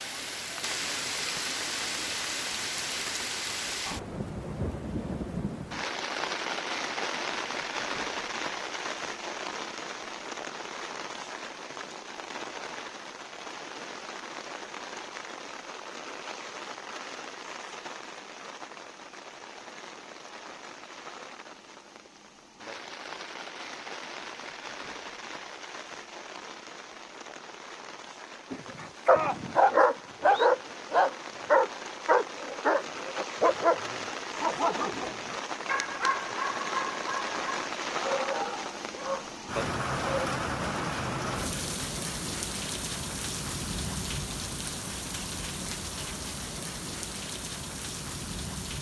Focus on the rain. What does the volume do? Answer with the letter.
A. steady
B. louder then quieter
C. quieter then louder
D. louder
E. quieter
C.